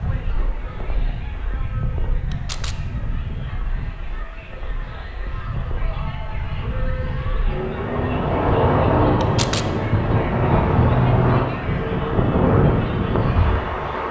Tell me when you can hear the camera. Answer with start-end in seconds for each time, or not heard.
2.3-2.8, 9.2-9.7.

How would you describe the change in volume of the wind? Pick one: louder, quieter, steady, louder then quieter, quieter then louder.
louder.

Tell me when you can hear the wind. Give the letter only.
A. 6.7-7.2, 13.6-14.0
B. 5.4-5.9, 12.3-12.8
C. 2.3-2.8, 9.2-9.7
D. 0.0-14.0
D.